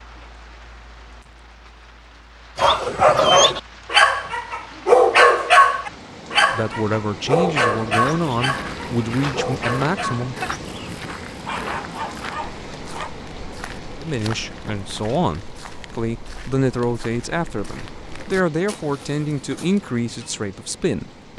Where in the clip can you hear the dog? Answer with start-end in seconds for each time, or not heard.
2.5-13.2.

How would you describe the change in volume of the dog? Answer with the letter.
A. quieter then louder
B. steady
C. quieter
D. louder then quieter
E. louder
C.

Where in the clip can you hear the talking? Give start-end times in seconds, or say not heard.
6.5-10.3, 14.0-21.3.